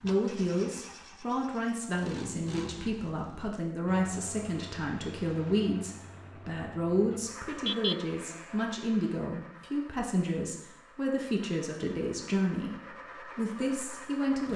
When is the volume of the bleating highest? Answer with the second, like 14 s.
8 s.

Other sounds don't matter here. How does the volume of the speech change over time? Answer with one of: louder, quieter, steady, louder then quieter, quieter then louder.
steady.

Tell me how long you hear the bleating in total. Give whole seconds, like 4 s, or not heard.
2 s.